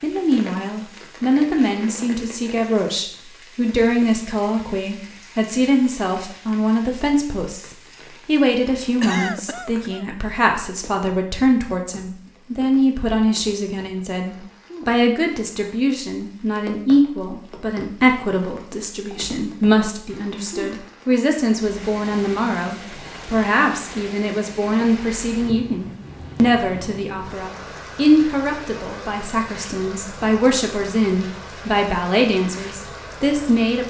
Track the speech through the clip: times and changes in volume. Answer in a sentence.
The speech can be heard from 0.0 to 33.8 s, at a steady volume.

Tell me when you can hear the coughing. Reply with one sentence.
You can hear the coughing from 9.0 to 10.4 s.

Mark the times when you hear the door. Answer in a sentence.
The door can't be heard in this clip.